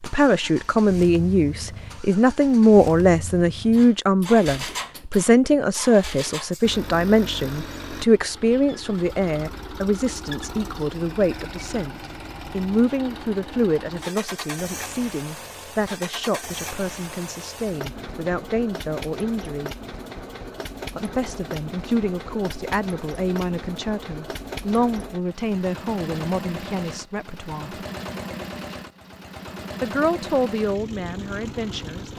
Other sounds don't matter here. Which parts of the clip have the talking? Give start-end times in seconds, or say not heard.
0.0-19.7, 20.9-27.8, 29.8-32.1.